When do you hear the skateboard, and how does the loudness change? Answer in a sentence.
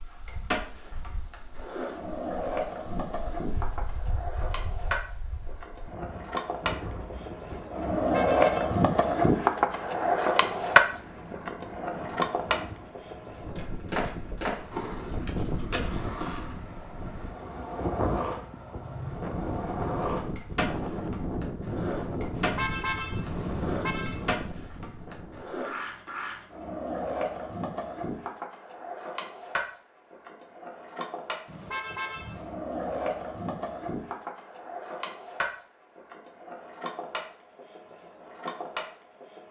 The skateboard can be heard from 0.0 to 39.4 s, getting louder then quieter.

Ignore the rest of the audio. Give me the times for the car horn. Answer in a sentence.
The car horn can be heard from 8.0 to 8.8 s, from 22.4 to 24.4 s and from 31.4 to 32.5 s.